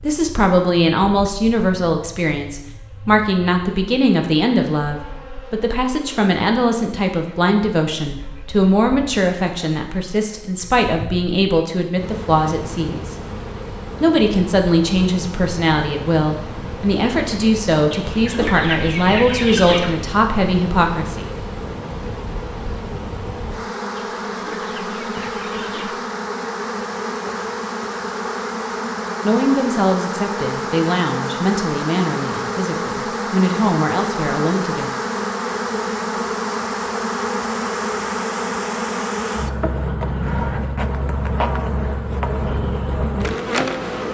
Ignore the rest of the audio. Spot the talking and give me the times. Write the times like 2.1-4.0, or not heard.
0.0-13.2, 14.0-21.2, 29.2-35.0.